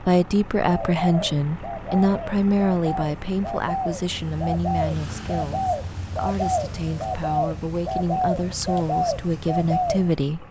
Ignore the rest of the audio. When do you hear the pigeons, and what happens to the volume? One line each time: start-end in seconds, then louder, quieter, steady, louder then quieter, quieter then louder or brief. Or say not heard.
0.7-10.2 louder.